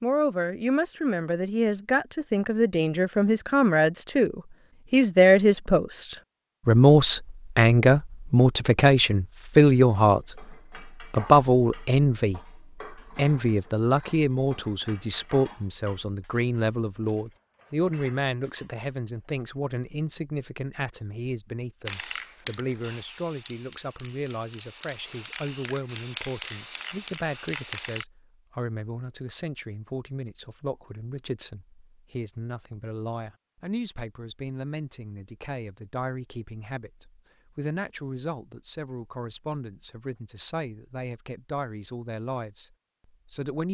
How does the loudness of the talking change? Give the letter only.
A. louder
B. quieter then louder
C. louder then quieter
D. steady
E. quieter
E.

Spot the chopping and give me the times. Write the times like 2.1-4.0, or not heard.
not heard.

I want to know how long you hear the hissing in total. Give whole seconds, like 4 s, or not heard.
6 s.